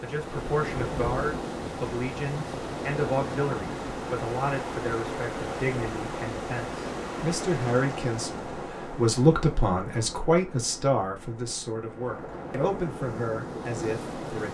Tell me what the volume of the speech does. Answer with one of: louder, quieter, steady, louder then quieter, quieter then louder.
louder then quieter.